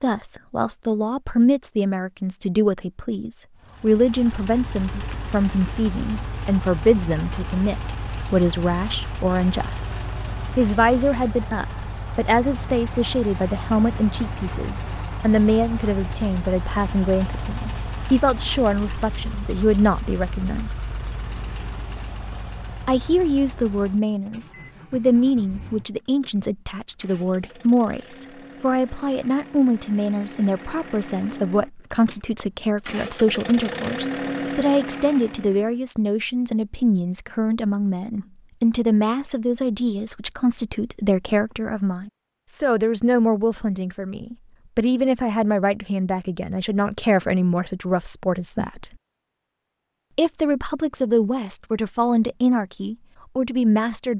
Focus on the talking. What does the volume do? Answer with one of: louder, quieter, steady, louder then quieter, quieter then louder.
steady.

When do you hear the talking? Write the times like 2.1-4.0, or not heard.
0.0-9.8, 10.6-20.8, 22.9-48.9, 50.1-54.1.